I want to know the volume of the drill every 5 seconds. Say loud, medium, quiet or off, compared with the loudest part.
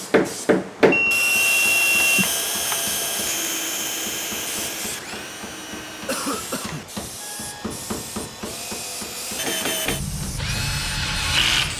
loud, medium, loud.